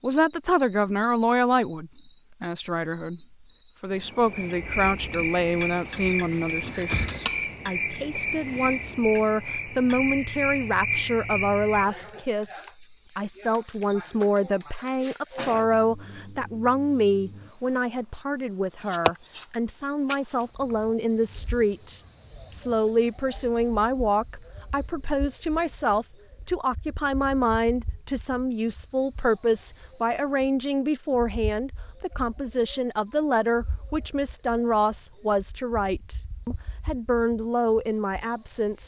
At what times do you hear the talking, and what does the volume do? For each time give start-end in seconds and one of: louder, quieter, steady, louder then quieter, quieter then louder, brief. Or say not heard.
0.0-38.8 steady.